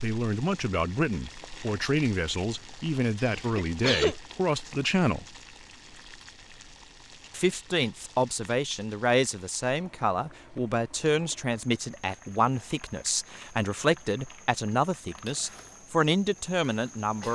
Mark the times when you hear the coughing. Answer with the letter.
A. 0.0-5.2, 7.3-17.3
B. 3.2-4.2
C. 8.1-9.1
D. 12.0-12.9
B.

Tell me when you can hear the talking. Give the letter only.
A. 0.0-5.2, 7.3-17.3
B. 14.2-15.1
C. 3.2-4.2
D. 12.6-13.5
A.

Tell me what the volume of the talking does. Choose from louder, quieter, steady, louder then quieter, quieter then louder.
steady.